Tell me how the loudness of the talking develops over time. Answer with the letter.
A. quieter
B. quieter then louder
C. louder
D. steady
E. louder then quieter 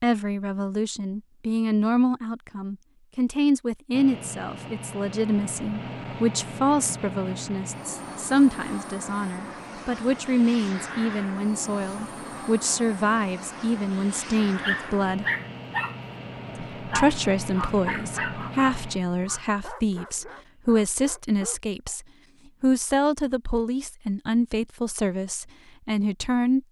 D.